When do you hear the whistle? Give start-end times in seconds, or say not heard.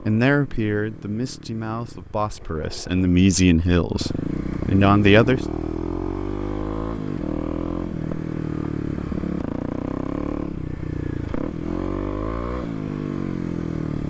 not heard.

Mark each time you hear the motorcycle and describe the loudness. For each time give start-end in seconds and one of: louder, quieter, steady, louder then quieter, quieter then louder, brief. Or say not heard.
0.0-14.0 louder.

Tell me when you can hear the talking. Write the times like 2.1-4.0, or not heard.
0.0-5.5.